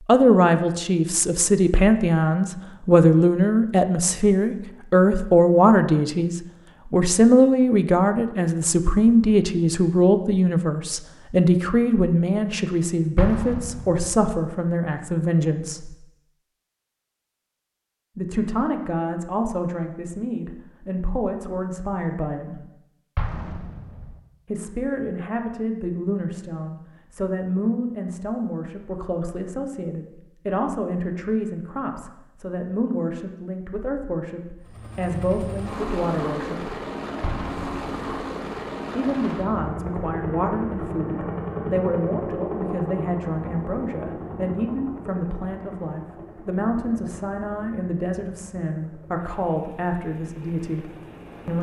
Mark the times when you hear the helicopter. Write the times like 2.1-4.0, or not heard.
34.6-51.5.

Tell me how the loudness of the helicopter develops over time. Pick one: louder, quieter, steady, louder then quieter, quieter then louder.
quieter.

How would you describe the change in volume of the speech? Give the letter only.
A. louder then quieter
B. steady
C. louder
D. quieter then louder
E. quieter
E.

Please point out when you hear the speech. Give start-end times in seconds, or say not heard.
0.1-15.9, 18.1-22.6, 24.4-36.7, 39.0-51.5.